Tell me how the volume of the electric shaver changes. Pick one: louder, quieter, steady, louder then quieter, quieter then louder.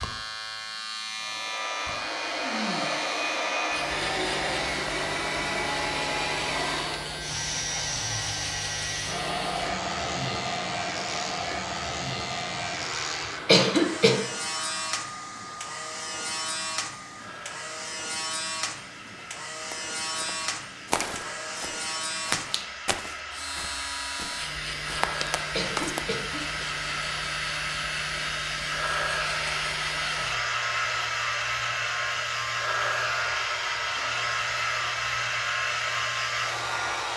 steady.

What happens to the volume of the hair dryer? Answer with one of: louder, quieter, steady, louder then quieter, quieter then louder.
quieter then louder.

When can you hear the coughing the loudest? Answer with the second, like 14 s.
14 s.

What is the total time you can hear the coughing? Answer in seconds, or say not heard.
2 s.